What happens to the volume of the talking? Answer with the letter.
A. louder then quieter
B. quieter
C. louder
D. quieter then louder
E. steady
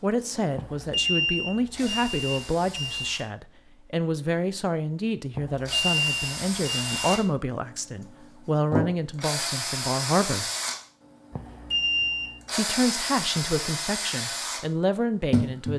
E.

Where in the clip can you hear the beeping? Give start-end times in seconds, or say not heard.
0.6-3.2, 5.3-7.2, 11.3-12.3.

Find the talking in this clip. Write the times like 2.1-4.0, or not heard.
0.0-10.5, 12.5-15.7.